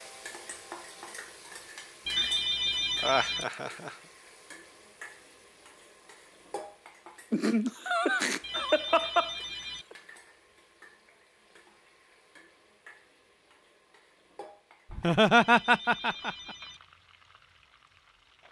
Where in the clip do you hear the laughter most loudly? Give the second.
15 s.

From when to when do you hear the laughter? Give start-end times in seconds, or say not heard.
3.0-4.0, 7.3-9.3, 14.9-16.6.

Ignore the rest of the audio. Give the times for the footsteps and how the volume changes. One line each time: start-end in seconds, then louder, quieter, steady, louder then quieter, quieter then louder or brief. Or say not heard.
not heard.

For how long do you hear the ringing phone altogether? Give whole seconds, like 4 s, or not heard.
4 s.